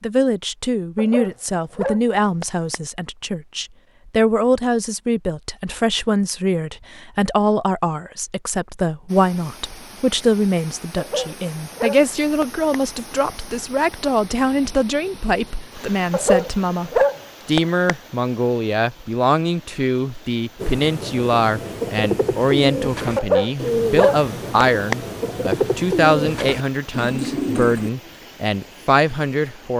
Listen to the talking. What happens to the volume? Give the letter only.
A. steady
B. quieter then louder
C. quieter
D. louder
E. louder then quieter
A.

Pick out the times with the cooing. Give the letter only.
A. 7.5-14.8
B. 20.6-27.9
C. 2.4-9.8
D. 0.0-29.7
B.